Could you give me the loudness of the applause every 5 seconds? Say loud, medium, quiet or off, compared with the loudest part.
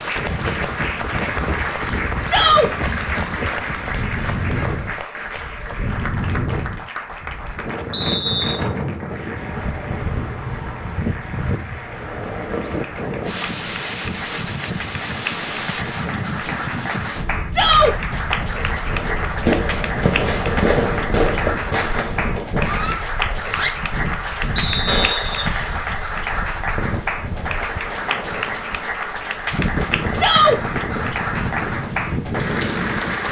loud, medium, medium, loud, loud, loud, loud.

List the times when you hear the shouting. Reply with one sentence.
You can hear the shouting from 2.2 to 2.7 s, from 17.5 to 17.9 s and from 30.1 to 30.6 s.